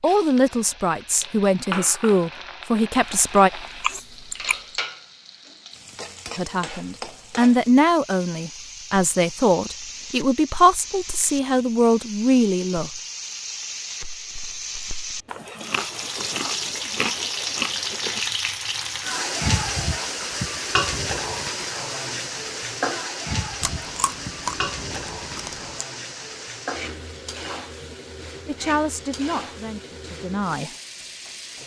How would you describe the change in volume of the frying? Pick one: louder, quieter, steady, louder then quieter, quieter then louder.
louder then quieter.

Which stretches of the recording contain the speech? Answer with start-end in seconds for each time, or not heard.
0.0-3.5, 6.3-12.9, 28.4-30.7.